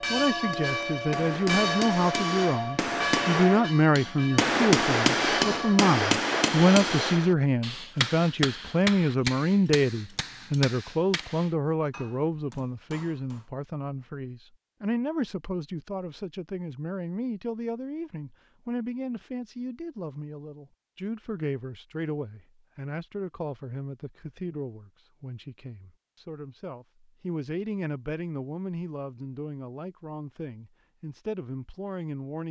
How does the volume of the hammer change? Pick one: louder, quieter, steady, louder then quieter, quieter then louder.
louder then quieter.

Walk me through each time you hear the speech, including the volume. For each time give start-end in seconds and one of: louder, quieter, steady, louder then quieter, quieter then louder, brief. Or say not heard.
0.0-32.4 quieter.